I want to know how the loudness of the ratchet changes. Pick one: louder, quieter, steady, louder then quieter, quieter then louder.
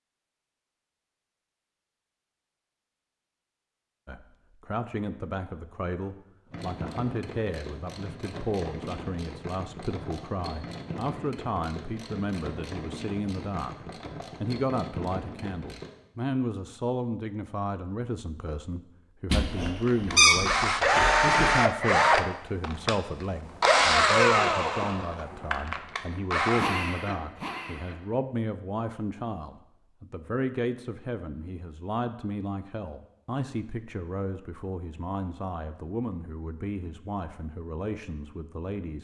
steady.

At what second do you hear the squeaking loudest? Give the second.
20 s.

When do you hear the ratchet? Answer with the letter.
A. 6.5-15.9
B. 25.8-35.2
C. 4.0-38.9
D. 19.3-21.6
A.